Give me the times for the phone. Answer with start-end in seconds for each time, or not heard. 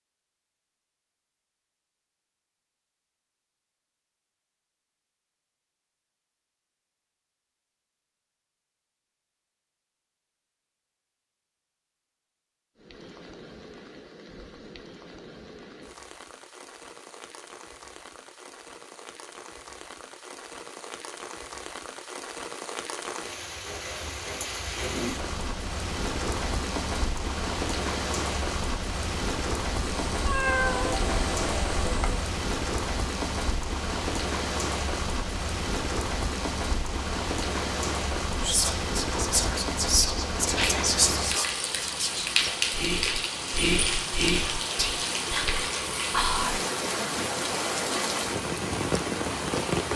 not heard.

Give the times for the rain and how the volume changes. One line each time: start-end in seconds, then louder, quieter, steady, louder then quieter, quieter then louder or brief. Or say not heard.
12.8-49.9 louder.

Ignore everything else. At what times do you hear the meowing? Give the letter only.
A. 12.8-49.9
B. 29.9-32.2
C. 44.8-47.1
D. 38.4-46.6
B.